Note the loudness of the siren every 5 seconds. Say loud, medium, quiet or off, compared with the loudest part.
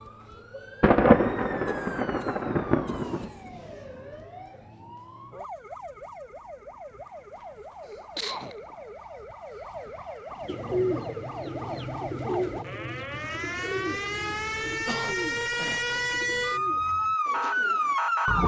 quiet, quiet, medium, loud.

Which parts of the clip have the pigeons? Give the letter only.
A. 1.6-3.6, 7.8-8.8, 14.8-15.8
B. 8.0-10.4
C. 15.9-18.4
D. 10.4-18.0
D.